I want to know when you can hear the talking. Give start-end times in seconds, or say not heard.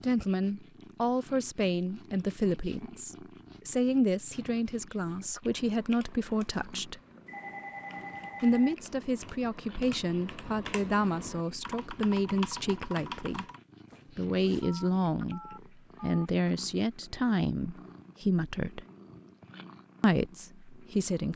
0.0-7.0, 8.4-13.4, 14.2-18.9, 20.0-21.3.